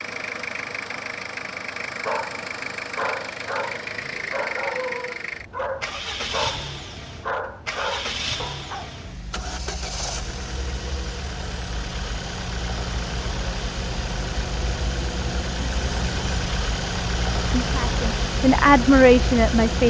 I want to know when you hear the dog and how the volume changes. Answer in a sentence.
The dog can be heard from 2.0 to 8.9 s, at a steady volume.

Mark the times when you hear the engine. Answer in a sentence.
The engine can be heard from 0.0 to 19.8 s.